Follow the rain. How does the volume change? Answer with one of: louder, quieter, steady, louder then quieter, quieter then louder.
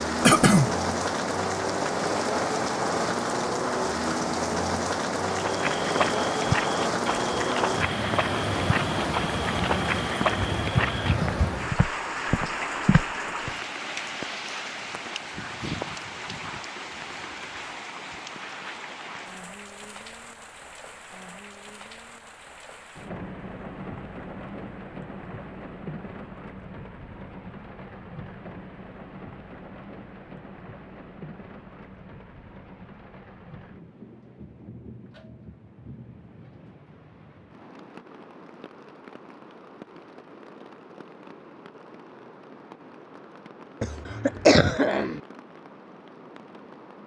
quieter.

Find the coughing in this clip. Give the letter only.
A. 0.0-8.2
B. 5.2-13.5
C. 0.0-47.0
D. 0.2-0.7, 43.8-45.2
D.